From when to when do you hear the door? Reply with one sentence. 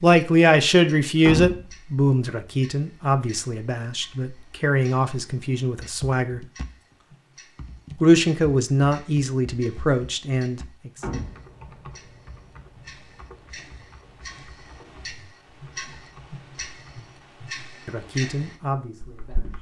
You can hear the door from 1.2 to 1.7 s and from 11.0 to 11.5 s.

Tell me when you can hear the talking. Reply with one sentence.
The talking can be heard from 0.0 to 6.4 s, from 8.0 to 10.9 s and from 17.9 to 19.5 s.